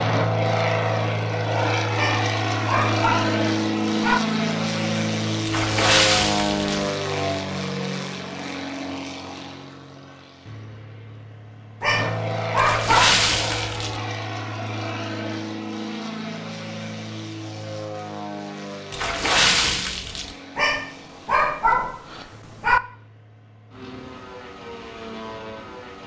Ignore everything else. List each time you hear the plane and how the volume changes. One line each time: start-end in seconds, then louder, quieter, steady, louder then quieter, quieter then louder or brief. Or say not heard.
0.0-26.0 quieter.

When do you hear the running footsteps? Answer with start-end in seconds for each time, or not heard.
not heard.